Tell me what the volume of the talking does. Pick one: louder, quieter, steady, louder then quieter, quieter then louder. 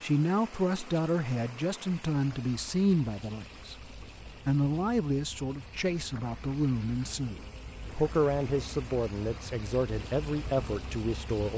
steady.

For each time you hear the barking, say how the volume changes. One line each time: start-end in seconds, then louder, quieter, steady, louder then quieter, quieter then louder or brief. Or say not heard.
not heard.